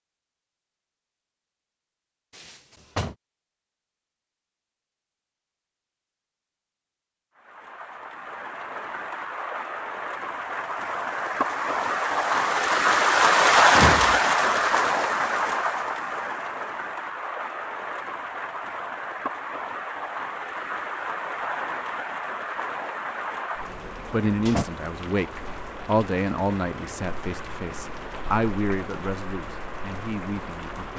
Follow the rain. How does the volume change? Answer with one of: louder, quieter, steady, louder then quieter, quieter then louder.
louder then quieter.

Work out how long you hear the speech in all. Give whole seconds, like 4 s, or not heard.
6 s.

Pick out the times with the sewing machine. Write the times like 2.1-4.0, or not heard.
not heard.